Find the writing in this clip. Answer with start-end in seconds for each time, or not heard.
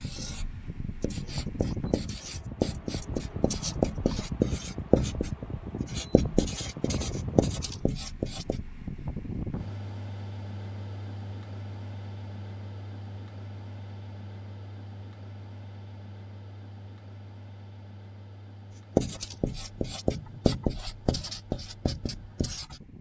0.0-8.7, 18.9-22.8.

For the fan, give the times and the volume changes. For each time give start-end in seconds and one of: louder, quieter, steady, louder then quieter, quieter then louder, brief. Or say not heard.
0.0-22.9 quieter.